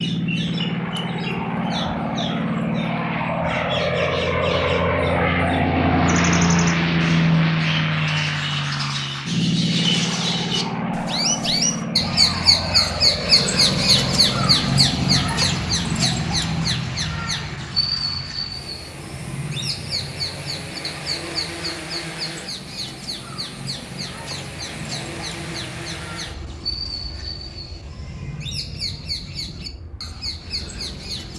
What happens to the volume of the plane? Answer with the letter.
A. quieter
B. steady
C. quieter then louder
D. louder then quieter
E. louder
A.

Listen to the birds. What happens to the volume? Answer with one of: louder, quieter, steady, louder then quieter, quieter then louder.
louder then quieter.